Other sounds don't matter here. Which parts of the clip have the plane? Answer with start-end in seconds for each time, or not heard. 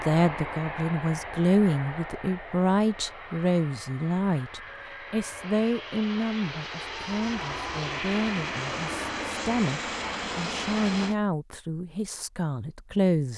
0.0-11.2.